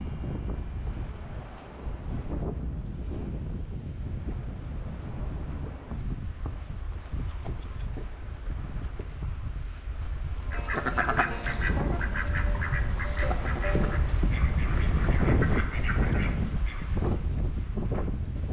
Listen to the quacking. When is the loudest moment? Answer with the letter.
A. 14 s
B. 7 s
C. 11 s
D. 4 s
C.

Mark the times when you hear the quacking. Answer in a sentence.
The quacking can be heard from 10.4 to 16.9 s.